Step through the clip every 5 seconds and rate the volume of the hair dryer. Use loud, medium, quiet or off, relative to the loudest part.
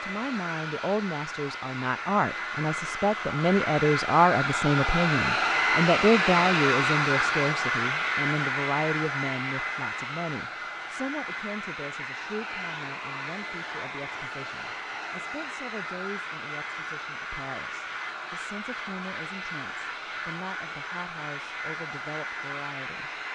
medium, loud, medium, medium, medium.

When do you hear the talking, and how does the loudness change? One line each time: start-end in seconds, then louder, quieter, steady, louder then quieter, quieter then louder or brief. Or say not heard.
0.0-23.1 quieter.